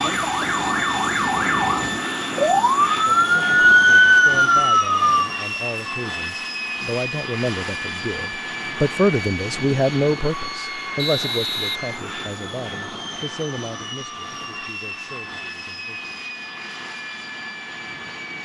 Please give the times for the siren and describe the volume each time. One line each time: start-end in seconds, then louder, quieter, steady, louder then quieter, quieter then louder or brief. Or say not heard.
0.0-5.3 louder.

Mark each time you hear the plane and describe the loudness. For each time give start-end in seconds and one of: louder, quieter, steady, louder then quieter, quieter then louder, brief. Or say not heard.
0.0-18.3 quieter.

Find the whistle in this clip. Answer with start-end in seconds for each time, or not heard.
10.9-12.4.